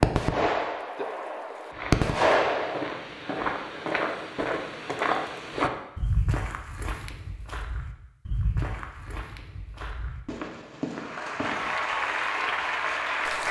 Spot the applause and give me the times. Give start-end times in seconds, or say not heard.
10.9-13.4.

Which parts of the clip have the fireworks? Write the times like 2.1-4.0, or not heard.
0.0-3.0.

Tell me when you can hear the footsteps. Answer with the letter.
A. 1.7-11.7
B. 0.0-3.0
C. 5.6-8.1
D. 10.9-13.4
A.